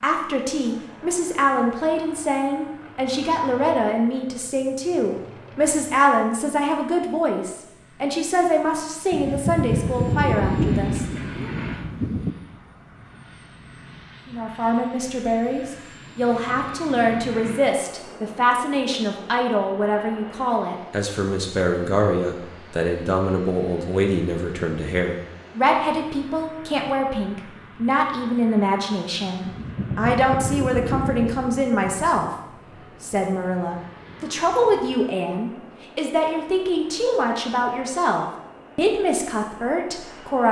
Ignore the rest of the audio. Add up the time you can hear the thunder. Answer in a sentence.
You can hear the thunder for 6 seconds altogether.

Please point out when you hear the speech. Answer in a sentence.
The speech can be heard from 0.0 to 11.5 s, from 14.2 to 32.3 s and from 33.0 to 40.4 s.